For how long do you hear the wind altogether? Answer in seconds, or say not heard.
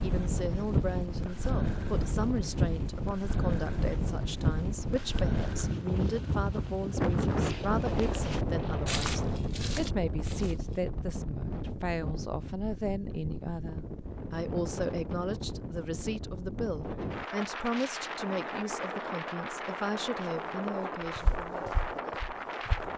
23 s.